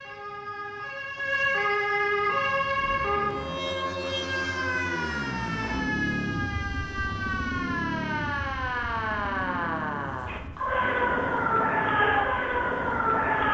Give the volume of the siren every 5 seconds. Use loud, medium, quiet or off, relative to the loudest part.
loud, medium, loud.